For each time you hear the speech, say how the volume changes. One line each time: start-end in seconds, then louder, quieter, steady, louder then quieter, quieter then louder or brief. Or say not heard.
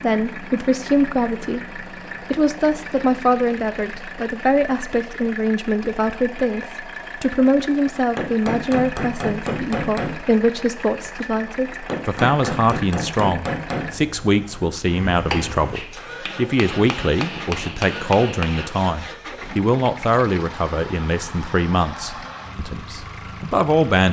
0.0-24.0 steady.